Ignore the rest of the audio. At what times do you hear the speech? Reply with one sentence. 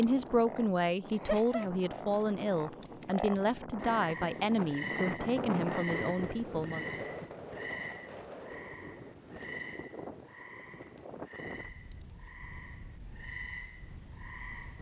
The speech can be heard from 0.0 to 6.8 s.